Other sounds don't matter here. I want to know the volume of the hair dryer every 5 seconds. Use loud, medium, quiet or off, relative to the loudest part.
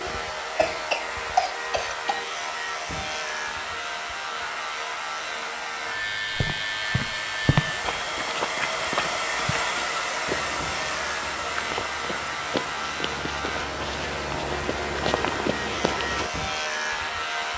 medium, loud, loud, medium.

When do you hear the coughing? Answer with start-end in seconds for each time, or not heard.
0.6-2.2.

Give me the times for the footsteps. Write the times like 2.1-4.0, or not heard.
6.3-16.3.